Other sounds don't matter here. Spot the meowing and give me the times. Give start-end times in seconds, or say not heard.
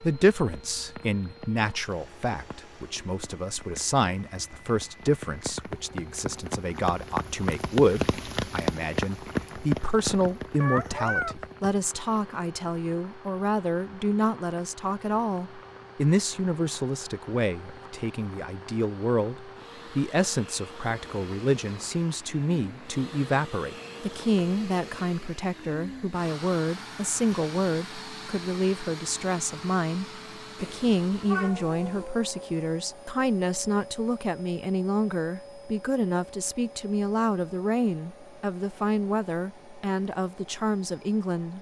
10.6-11.3, 30.6-32.0.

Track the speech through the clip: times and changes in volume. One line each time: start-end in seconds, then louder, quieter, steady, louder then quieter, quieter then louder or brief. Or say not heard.
0.0-41.5 steady.